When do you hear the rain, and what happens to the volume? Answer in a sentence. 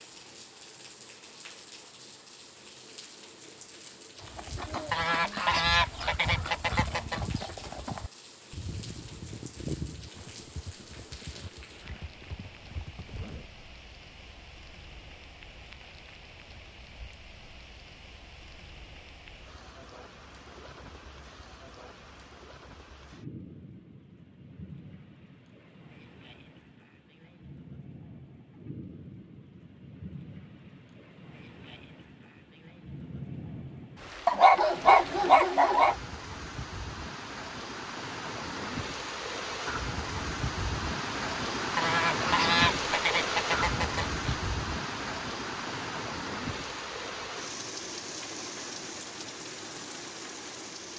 The rain can be heard from 0.0 to 50.9 s, getting louder.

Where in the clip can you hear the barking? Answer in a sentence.
The barking can be heard from 34.2 to 36.0 s.